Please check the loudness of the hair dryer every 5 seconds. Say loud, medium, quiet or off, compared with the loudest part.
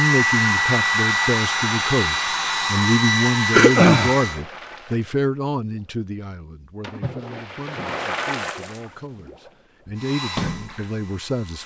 loud, off, quiet.